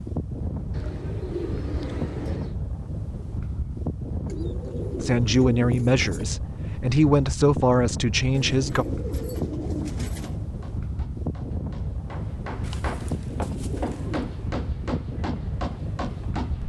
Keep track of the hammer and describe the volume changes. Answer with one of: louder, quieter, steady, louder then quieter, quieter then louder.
louder.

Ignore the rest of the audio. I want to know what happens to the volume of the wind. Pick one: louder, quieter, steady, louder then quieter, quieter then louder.
steady.